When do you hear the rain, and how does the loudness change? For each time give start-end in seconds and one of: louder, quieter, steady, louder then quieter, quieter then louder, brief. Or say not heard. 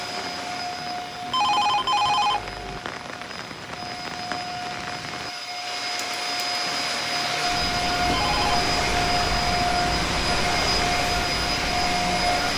0.0-12.5 louder.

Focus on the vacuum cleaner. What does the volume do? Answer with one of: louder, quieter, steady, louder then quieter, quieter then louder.
louder.